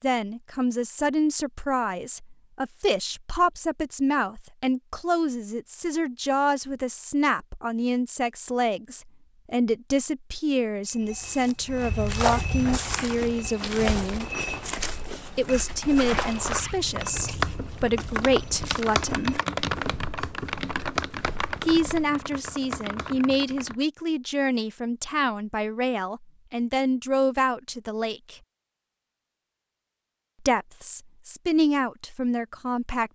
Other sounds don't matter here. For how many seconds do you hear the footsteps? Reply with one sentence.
You can hear the footsteps for 11 seconds altogether.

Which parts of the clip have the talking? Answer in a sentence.
You can hear the talking from 0.0 to 14.2 s, from 15.3 to 19.4 s, from 21.6 to 28.4 s and from 30.4 to 33.0 s.